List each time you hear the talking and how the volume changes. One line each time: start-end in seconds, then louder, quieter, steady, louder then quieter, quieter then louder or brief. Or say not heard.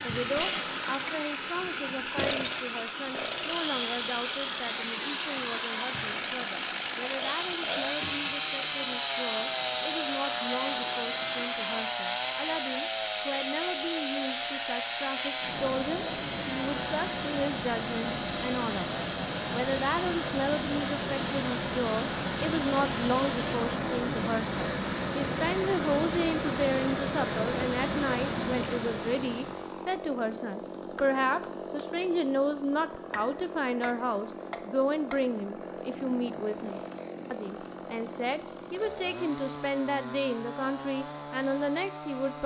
0.0-42.4 louder.